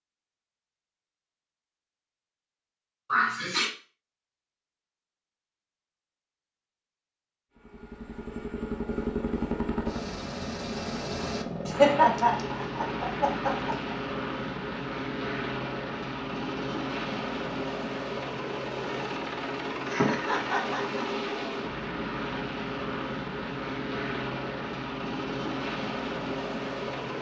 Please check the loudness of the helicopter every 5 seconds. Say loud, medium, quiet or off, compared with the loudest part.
off, loud, loud, loud, loud, loud.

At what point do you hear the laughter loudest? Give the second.
12 s.